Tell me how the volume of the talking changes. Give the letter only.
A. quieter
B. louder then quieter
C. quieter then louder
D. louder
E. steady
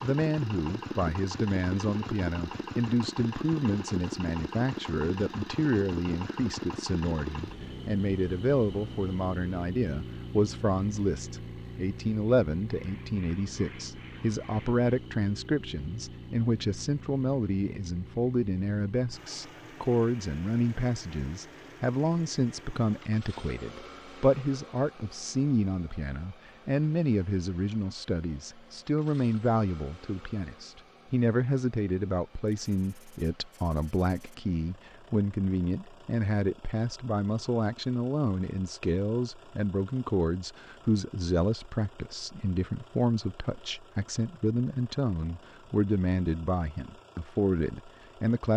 E.